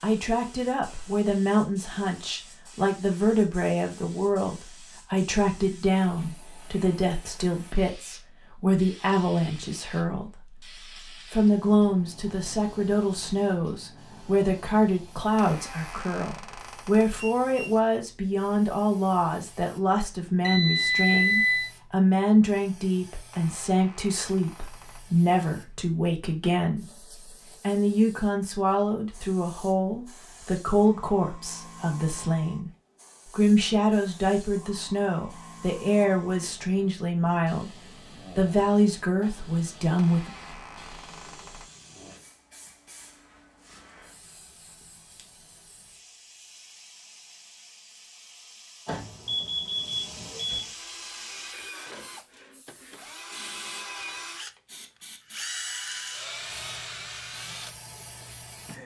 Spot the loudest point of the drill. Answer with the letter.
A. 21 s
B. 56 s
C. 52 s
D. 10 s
B.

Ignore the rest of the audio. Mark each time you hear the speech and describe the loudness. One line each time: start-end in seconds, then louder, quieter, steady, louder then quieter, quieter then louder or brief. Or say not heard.
0.0-37.8 steady
38.4-40.3 brief.